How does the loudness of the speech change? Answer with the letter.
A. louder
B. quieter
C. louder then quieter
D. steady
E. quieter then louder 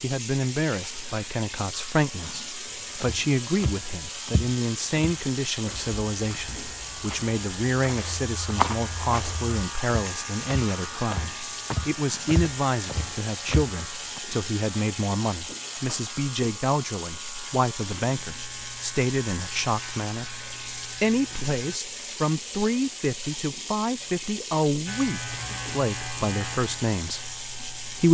D.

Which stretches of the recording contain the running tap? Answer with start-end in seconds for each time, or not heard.
0.0-28.0.